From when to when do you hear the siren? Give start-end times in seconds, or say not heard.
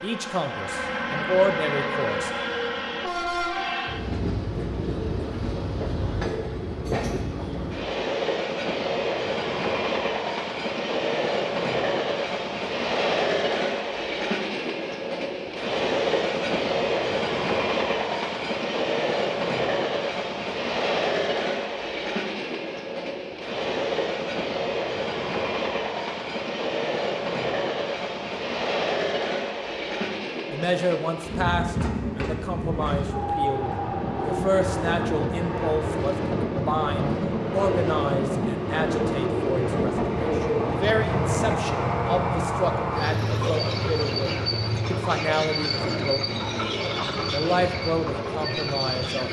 not heard.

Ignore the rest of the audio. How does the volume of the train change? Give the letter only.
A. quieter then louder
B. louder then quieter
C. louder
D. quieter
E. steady
E.